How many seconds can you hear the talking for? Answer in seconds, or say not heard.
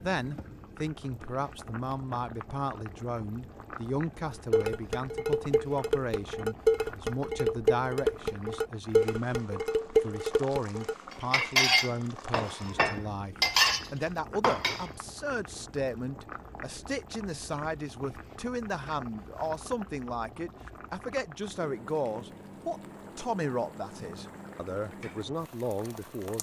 26 s.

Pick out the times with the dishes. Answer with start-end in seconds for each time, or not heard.
4.5-14.9.